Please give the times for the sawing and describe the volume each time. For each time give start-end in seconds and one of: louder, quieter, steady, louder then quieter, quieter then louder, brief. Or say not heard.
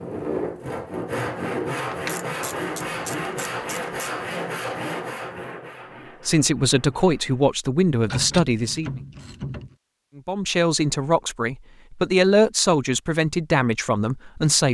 0.0-7.5 quieter.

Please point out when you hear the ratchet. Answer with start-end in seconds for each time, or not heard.
1.9-4.1, 8.0-9.8.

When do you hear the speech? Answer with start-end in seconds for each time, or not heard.
6.2-9.0, 10.2-14.6.